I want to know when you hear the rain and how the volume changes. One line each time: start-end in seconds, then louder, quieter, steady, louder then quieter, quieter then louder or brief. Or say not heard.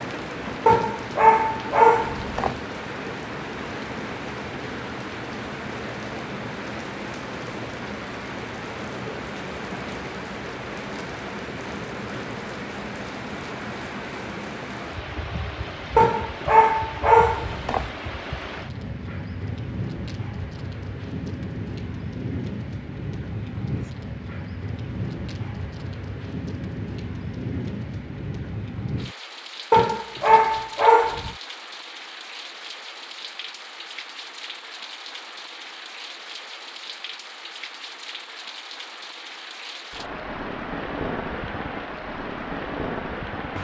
0.0-43.5 steady.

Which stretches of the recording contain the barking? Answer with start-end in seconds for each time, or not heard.
0.7-2.5, 15.9-17.9, 29.7-31.4.